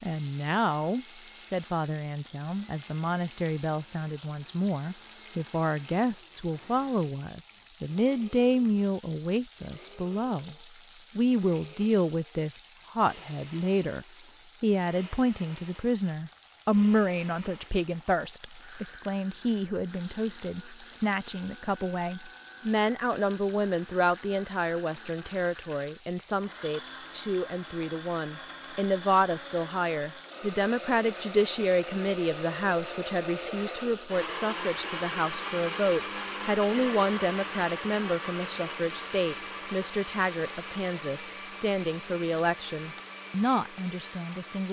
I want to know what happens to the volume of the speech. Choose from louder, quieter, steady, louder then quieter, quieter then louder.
steady.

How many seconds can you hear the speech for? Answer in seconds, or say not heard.
44 s.